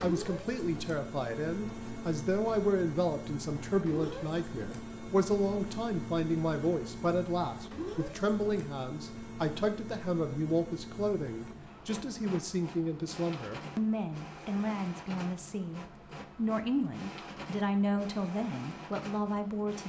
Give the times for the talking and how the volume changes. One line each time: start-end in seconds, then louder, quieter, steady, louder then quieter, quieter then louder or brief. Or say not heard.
0.0-19.8 steady.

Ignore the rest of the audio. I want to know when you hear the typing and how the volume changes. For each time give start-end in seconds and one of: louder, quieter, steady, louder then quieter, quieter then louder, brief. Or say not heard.
not heard.